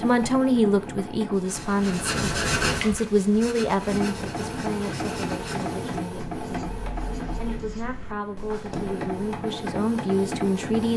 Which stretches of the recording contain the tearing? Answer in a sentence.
The tearing can't be heard in this clip.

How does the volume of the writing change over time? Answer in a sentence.
The loudness of the writing goes down.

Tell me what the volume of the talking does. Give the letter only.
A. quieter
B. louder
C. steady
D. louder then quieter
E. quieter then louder
E.